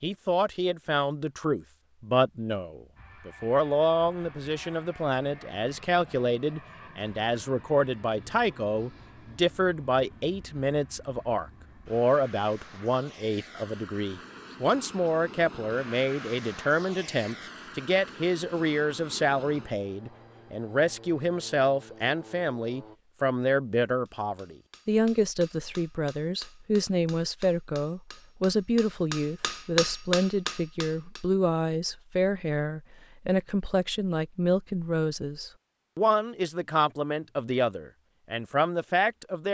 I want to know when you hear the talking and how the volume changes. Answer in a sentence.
You can hear the talking from 0.0 to 39.4 s, at a steady volume.